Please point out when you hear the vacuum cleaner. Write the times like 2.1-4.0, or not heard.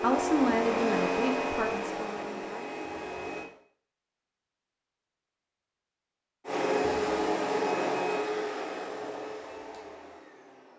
0.0-3.5, 6.5-10.7.